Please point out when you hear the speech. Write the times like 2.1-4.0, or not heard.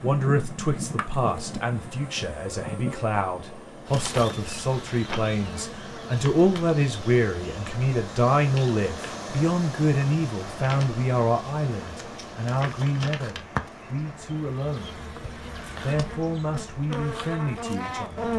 0.0-15.0, 15.8-18.2.